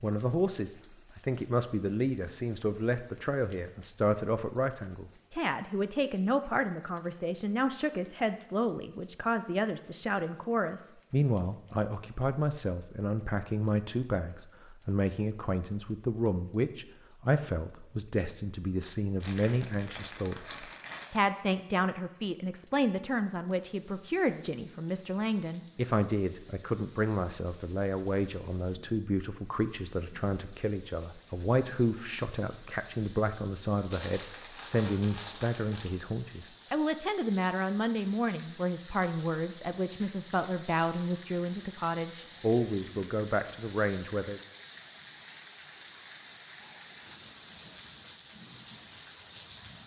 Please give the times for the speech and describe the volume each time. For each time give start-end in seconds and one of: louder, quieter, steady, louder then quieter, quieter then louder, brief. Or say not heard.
0.0-44.4 steady.